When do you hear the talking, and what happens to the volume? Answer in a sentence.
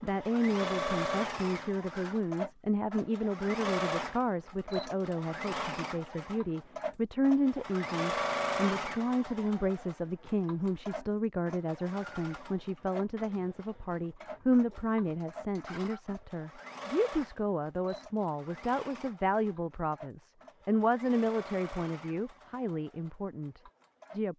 The talking can be heard from 0.0 to 24.3 s, at a steady volume.